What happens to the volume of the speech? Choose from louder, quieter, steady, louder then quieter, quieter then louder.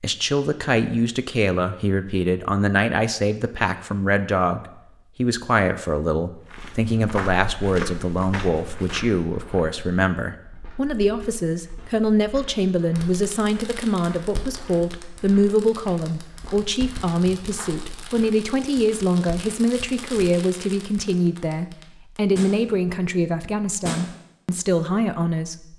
steady.